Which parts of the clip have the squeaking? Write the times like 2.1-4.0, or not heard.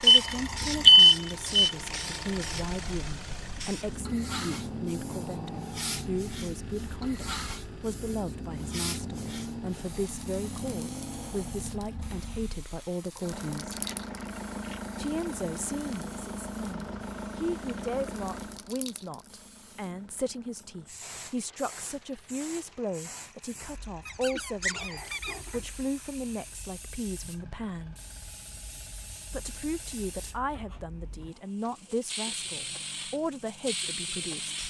24.1-25.6.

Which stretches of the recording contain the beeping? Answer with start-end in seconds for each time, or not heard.
0.1-1.7.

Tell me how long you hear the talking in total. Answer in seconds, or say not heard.
32 s.